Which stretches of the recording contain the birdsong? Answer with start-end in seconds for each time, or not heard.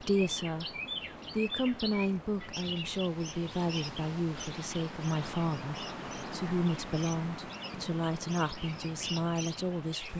0.0-10.1.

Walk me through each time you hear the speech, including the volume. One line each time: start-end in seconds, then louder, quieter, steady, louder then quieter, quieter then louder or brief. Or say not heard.
0.0-0.7 brief
1.4-10.1 steady.